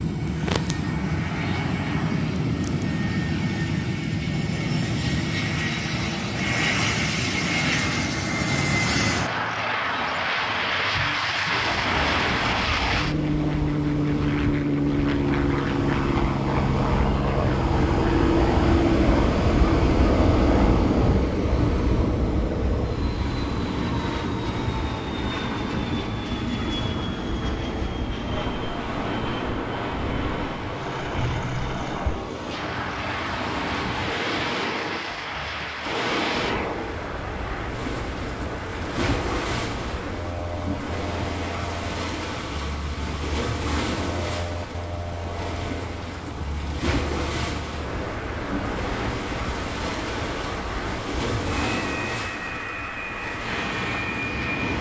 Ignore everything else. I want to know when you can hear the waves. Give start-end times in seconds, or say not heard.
11.5-54.7.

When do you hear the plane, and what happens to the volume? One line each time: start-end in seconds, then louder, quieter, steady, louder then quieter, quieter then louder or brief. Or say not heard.
0.0-54.7 quieter.